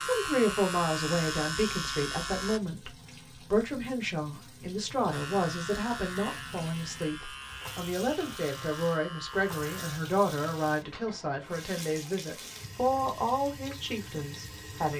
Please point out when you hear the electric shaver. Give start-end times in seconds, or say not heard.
0.0-2.6, 5.1-10.0.